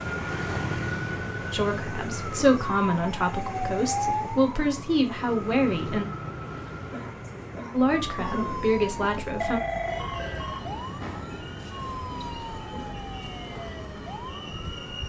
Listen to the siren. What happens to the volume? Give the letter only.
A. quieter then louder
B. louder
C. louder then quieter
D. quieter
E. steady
D.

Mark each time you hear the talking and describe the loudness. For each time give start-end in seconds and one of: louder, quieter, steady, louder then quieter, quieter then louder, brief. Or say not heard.
1.5-6.0 quieter then louder
7.7-9.6 brief.